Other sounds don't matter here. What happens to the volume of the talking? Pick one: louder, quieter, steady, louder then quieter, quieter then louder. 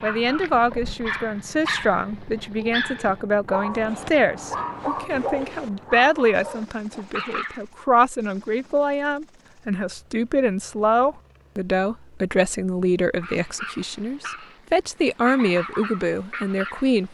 steady.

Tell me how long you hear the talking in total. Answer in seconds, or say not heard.
17 s.